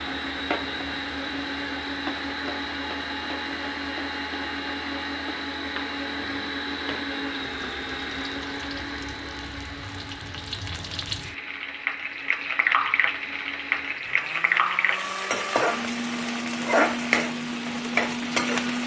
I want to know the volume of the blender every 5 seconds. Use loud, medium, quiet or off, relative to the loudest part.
loud, loud, medium, loud.